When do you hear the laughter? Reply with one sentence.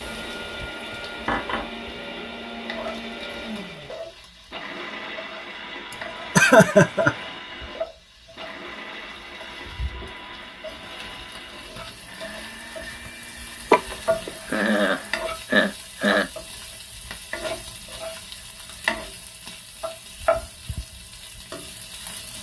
You can hear the laughter from 5.9 to 7.2 s and from 13.7 to 16.3 s.